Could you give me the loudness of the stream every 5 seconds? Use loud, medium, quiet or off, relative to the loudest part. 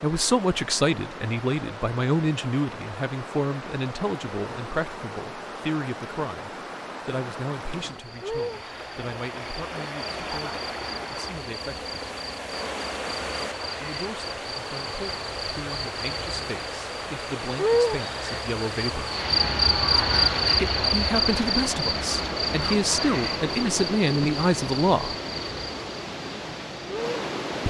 medium, medium, loud, loud, loud, loud.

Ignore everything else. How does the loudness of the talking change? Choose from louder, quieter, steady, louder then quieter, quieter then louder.
quieter then louder.